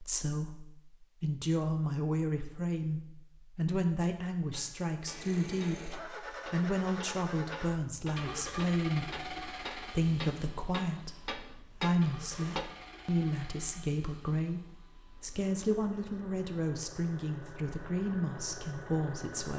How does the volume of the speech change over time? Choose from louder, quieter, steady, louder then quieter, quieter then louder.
steady.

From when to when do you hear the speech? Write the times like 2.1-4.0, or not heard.
0.0-19.5.